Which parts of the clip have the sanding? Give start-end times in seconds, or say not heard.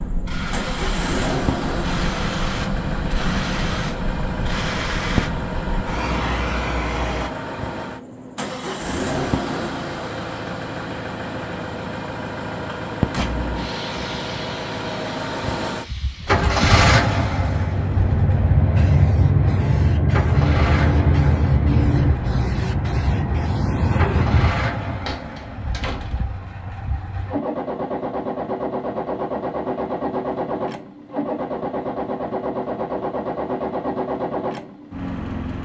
not heard.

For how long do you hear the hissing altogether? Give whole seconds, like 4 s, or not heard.
19 s.